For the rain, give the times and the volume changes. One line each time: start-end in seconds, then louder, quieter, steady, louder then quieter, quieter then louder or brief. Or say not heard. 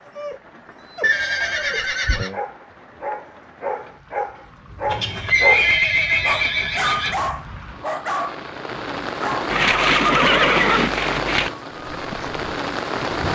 0.0-13.3 louder.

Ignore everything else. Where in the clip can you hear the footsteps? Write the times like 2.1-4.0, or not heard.
11.8-13.3.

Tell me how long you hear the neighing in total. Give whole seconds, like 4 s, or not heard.
6 s.